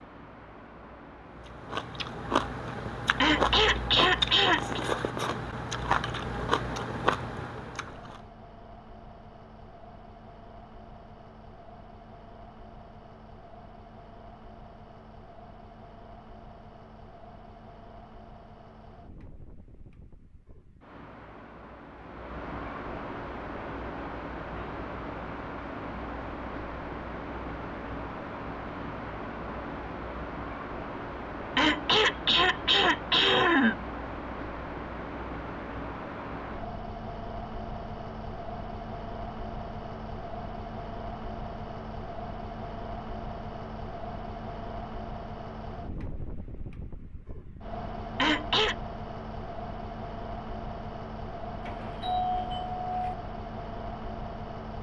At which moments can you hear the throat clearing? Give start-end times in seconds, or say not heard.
3.2-4.8, 31.6-33.8, 48.1-48.8.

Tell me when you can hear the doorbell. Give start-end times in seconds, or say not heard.
51.6-53.1.